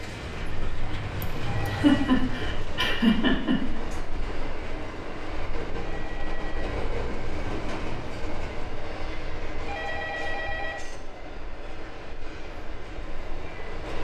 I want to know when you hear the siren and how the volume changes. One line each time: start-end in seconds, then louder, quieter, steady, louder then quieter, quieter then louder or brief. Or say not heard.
not heard.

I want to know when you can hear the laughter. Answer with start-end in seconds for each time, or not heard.
1.2-3.8.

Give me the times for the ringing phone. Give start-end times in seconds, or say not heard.
1.4-2.1, 5.8-6.7, 9.7-10.8.